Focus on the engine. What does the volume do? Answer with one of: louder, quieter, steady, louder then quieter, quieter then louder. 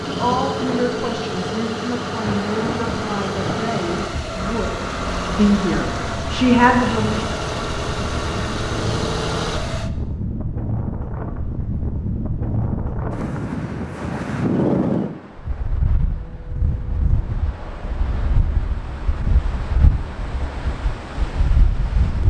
steady.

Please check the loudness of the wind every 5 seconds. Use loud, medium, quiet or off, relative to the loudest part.
medium, medium, loud, medium, medium.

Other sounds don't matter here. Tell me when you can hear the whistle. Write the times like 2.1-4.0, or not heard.
not heard.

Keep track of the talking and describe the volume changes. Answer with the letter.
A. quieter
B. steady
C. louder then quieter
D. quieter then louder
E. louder
E.